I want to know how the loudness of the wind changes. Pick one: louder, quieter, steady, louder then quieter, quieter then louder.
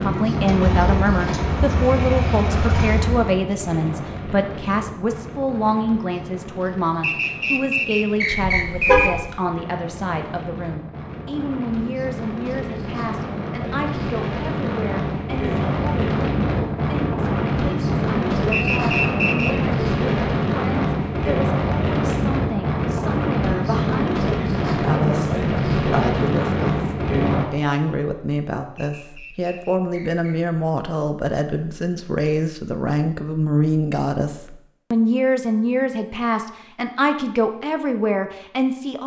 quieter then louder.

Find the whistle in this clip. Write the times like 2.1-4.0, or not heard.
7.0-9.1, 18.5-19.6, 28.8-30.4.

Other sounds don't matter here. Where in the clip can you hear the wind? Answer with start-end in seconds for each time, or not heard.
0.0-27.4.